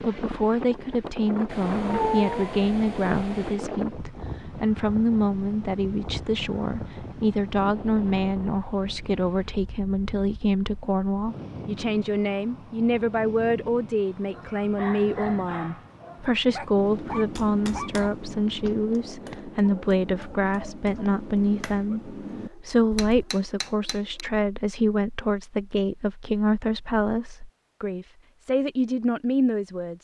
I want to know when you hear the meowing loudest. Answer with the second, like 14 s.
2 s.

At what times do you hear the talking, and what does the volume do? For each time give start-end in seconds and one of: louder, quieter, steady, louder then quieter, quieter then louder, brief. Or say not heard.
0.0-30.0 steady.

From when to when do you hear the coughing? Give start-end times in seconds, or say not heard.
not heard.